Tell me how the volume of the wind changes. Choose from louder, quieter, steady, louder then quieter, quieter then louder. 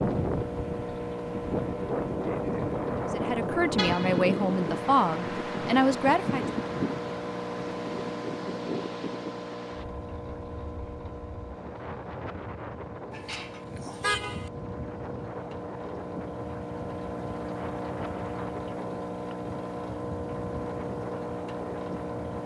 quieter.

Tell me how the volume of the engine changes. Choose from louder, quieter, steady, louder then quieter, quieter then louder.
quieter then louder.